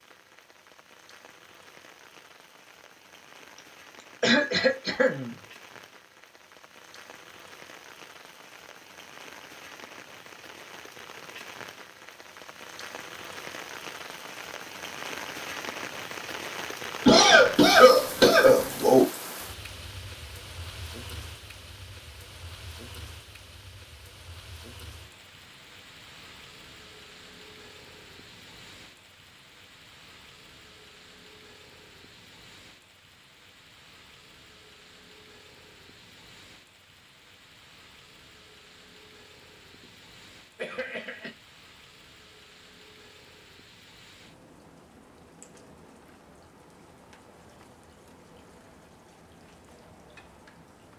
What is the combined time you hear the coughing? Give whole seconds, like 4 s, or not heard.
4 s.